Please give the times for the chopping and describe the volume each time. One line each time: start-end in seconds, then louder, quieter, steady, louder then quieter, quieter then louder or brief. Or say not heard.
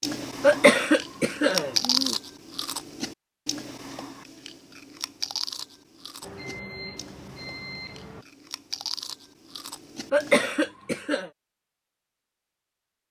not heard.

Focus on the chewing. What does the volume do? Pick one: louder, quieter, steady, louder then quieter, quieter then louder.
quieter then louder.